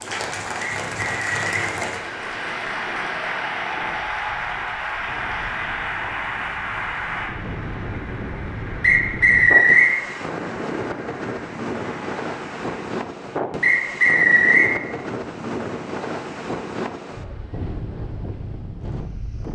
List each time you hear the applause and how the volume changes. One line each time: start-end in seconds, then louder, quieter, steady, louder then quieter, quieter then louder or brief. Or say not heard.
0.0-12.8 quieter.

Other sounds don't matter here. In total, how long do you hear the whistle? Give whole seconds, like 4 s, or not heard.
3 s.